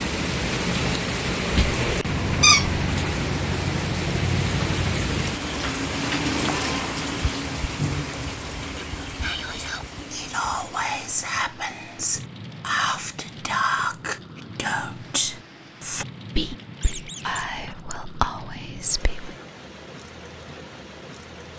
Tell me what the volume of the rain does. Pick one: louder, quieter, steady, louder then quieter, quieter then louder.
quieter.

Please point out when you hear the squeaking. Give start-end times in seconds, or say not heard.
1.6-2.8, 16.8-17.4.